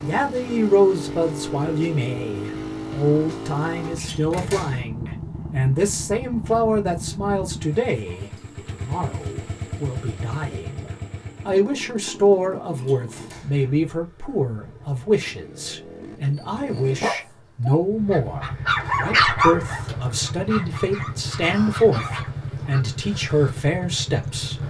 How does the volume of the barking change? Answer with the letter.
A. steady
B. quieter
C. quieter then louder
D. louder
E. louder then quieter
E.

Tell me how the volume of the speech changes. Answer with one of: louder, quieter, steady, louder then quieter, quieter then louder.
steady.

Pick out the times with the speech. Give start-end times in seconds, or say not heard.
0.0-24.6.